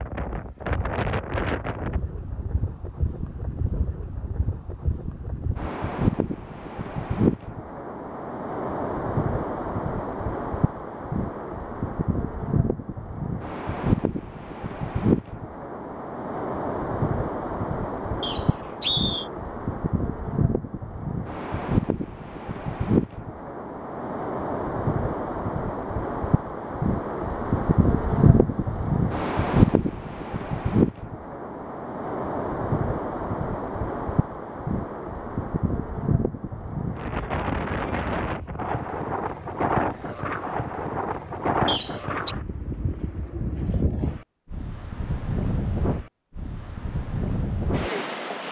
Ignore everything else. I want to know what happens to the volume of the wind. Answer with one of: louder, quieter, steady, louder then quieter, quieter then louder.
steady.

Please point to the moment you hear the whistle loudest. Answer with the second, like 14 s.
19 s.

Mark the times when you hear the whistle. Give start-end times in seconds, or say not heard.
18.2-19.2, 41.6-42.4.